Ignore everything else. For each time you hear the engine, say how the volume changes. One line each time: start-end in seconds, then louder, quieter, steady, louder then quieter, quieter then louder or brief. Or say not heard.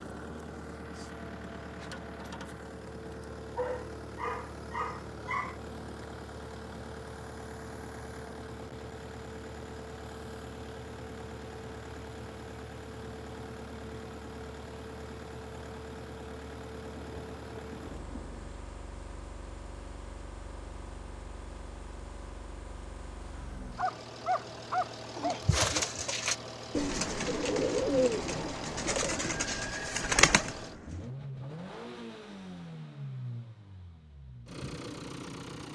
0.0-35.7 steady.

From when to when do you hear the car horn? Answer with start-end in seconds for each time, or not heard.
not heard.